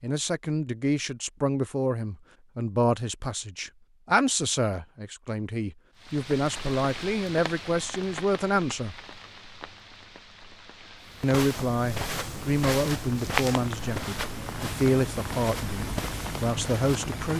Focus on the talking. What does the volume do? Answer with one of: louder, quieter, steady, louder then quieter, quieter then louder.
steady.